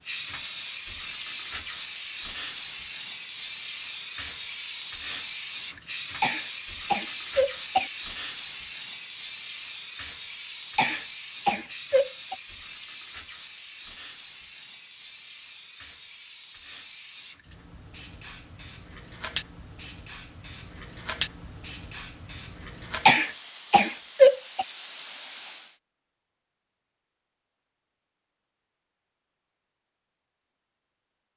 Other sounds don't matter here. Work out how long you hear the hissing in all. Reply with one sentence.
The hissing can be heard for 26 seconds in total.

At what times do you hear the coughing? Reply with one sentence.
The coughing can be heard from 6.2 to 7.9 s, from 10.8 to 12.3 s and from 23.1 to 24.6 s.